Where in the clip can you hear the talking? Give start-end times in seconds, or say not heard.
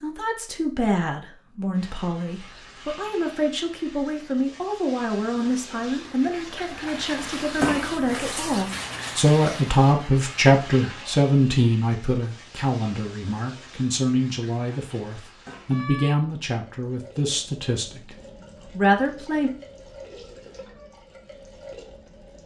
0.0-19.5.